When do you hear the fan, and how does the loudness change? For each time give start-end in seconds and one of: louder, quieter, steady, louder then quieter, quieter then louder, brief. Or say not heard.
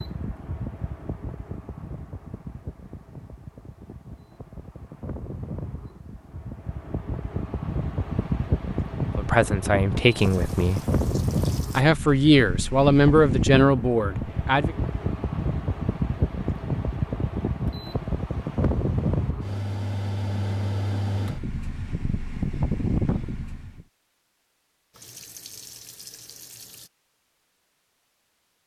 0.0-23.9 louder.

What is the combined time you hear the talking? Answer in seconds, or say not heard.
5 s.